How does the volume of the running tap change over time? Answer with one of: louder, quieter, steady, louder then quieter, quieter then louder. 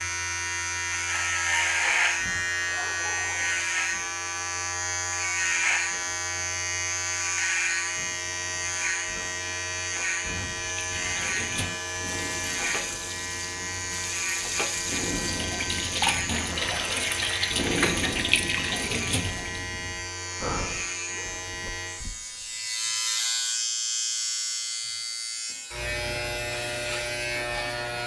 louder.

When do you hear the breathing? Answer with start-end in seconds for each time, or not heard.
10.2-20.9.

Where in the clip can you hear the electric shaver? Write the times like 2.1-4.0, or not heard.
0.0-28.0.